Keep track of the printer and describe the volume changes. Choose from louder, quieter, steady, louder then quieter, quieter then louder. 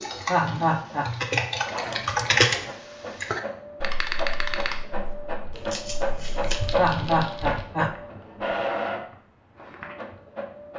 louder.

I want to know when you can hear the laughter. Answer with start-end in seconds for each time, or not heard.
0.2-1.1, 6.8-8.0.